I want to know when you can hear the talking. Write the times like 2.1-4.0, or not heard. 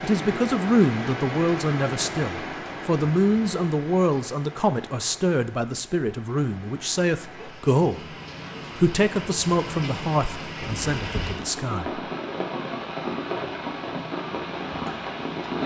0.0-8.2, 8.8-12.0.